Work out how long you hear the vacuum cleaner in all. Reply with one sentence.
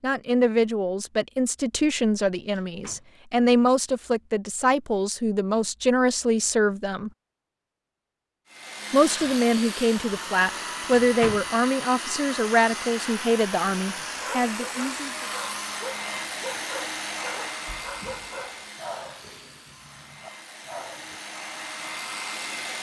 You can hear the vacuum cleaner for 14 seconds altogether.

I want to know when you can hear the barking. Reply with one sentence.
The barking can be heard from 14.1 to 21.2 s.